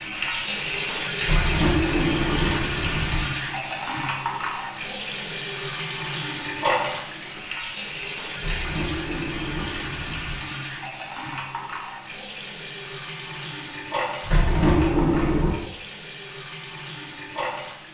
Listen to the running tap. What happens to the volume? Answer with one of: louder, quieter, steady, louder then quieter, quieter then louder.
quieter.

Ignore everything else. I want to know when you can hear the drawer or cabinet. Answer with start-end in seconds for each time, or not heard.
1.2-3.2, 8.3-10.3, 14.2-15.7.